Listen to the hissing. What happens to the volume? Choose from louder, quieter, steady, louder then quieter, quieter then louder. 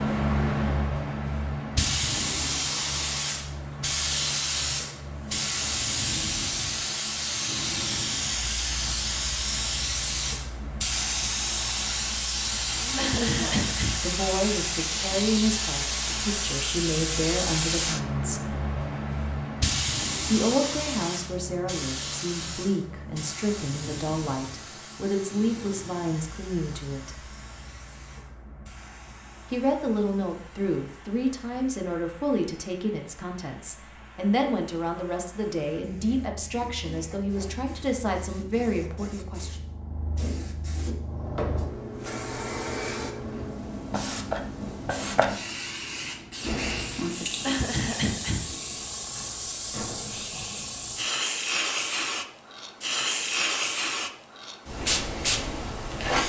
quieter then louder.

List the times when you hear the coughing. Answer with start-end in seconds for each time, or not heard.
12.9-14.0, 47.5-48.5.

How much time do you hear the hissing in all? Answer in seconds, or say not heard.
56 s.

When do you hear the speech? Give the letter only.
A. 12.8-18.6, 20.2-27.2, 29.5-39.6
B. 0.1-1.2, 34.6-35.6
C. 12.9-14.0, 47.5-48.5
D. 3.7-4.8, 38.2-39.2
A.